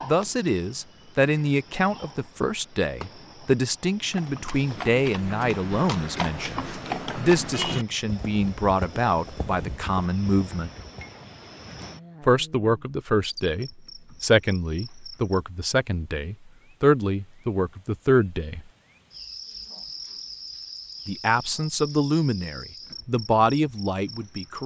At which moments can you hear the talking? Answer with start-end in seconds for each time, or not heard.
0.1-10.7, 12.2-18.6, 21.1-24.6.